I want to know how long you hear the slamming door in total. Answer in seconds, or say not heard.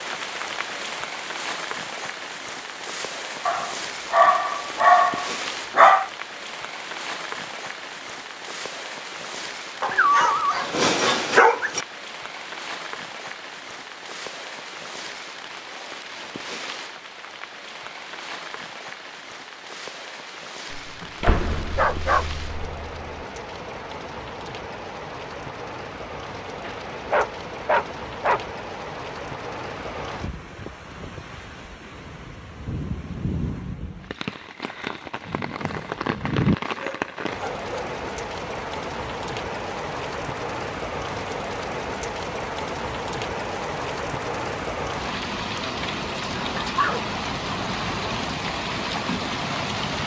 2 s.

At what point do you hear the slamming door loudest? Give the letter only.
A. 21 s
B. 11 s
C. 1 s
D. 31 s
A.